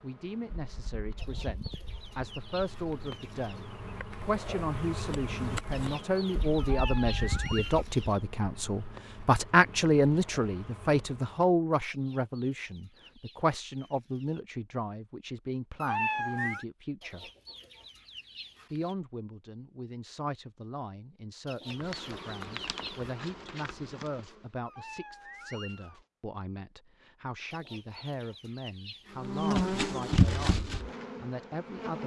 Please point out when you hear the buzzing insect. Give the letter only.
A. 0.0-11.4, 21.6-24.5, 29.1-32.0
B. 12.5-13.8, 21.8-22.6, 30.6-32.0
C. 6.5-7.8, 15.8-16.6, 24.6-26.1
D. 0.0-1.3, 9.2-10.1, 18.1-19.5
A.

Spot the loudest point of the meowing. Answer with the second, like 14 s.
16 s.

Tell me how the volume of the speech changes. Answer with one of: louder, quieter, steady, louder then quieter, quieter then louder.
louder then quieter.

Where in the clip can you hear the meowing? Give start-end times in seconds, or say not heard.
6.5-7.8, 15.8-16.6, 24.6-26.1.